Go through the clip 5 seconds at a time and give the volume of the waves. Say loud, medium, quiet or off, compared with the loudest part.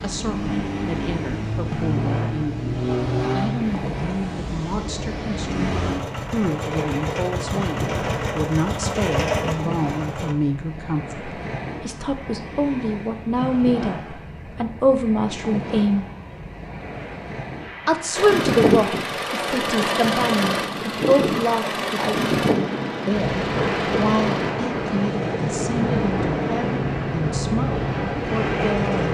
medium, medium, medium, medium, loud, loud.